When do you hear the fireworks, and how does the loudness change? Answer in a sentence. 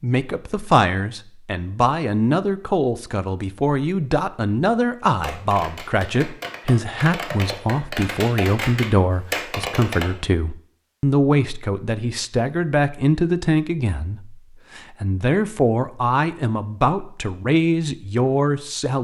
The fireworks can be heard from 5.2 to 10.1 s, getting louder.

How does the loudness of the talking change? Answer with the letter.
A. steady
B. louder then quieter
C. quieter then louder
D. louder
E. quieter
A.